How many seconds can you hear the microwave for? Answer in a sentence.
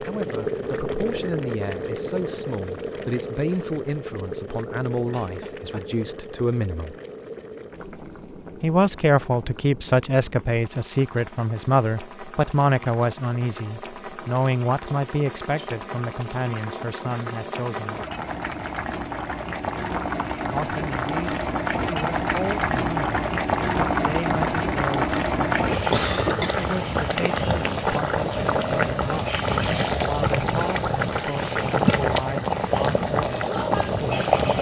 The microwave can't be heard in this clip.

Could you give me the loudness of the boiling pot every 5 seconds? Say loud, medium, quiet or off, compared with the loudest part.
medium, quiet, quiet, medium, loud, loud, loud.